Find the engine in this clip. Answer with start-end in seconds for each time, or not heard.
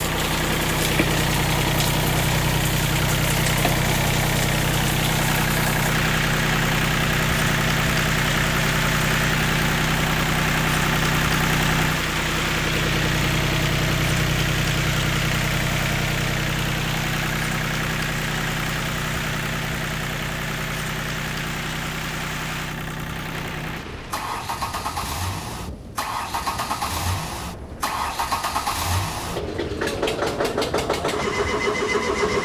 0.0-32.3.